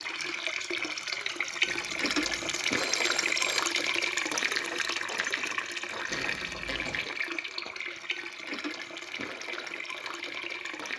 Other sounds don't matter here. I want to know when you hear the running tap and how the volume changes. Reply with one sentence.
The running tap can be heard from 0.0 to 10.9 s, getting quieter.